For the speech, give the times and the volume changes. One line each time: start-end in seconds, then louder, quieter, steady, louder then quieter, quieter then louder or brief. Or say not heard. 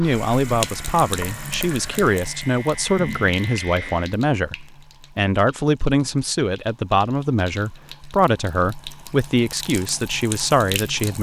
0.0-11.1 steady.